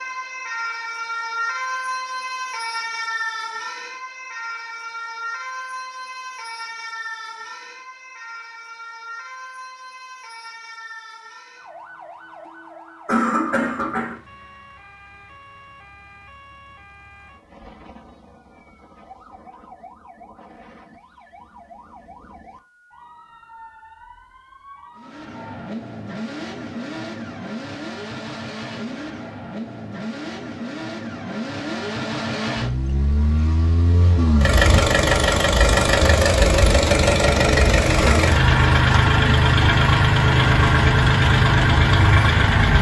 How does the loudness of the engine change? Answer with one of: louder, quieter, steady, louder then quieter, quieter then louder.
louder.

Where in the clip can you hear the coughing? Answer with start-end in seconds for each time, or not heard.
13.1-14.2, 37.9-38.3.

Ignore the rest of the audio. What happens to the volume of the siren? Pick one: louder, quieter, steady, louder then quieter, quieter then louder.
quieter.